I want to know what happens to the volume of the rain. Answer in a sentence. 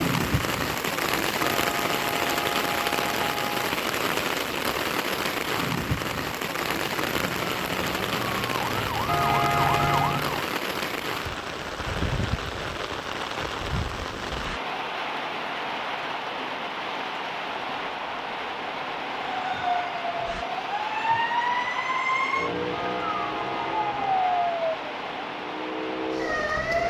The loudness of the rain goes down.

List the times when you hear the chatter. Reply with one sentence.
The chatter can't be heard in this clip.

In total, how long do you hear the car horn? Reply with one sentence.
You can hear the car horn for 5 seconds altogether.